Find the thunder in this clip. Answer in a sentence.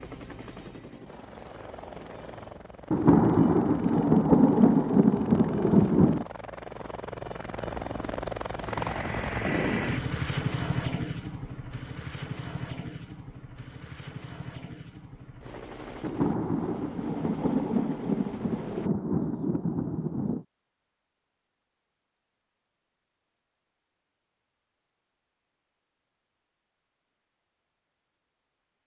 The thunder can be heard from 2.9 to 6.2 s and from 16.0 to 20.4 s.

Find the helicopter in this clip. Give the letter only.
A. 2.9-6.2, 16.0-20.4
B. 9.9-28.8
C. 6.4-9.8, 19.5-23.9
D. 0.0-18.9
D.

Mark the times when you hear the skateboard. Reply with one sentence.
The skateboard can't be heard in this clip.